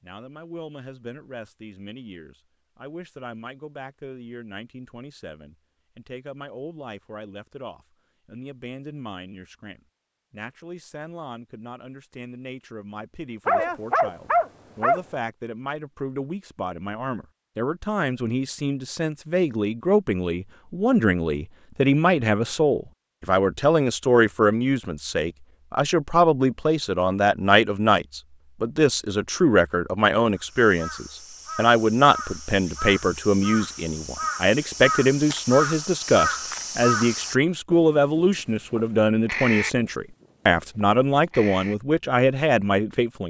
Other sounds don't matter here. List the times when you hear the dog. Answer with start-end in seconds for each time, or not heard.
13.4-15.0.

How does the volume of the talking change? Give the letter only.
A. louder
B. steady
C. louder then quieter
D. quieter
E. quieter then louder
A.